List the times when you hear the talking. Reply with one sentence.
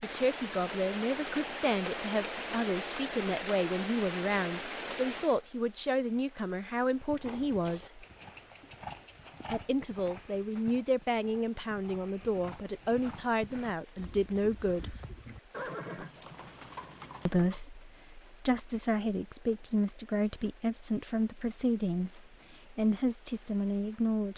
The talking can be heard from 0.0 to 8.1 s, from 9.5 to 14.9 s and from 17.2 to 24.3 s.